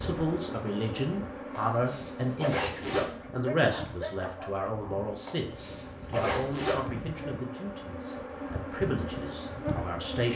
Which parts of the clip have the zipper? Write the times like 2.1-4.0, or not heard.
1.6-3.1, 5.2-6.8.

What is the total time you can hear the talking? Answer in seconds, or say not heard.
10 s.